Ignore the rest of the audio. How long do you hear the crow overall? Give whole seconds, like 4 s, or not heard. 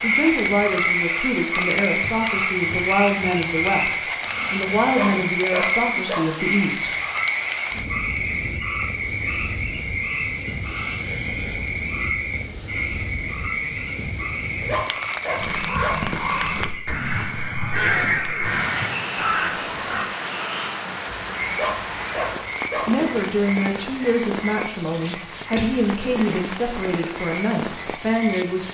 5 s.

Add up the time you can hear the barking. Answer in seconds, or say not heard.
4 s.